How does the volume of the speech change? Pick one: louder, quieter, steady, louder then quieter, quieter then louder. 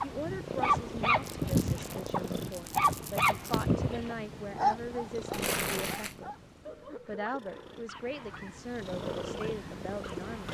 steady.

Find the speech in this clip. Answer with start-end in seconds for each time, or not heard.
0.0-6.3, 7.0-10.4.